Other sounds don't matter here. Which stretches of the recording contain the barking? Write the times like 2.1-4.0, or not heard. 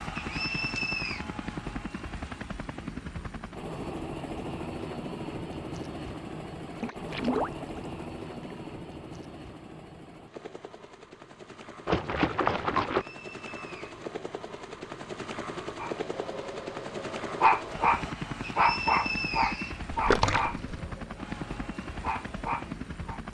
15.8-23.2.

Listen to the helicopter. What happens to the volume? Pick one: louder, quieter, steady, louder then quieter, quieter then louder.
quieter then louder.